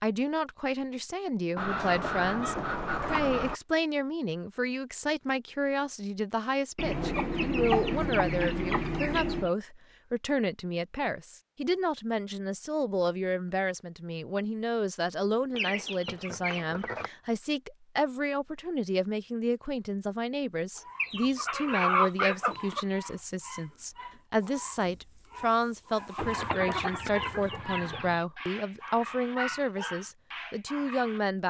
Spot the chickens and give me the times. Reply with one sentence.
The chickens can be heard from 1.6 to 3.6 s, from 6.8 to 9.5 s, from 15.6 to 17.1 s, from 20.9 to 22.9 s and from 26.1 to 28.2 s.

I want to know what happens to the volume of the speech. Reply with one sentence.
The loudness of the speech stays about the same.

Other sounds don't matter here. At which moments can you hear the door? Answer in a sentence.
You can't hear the door here.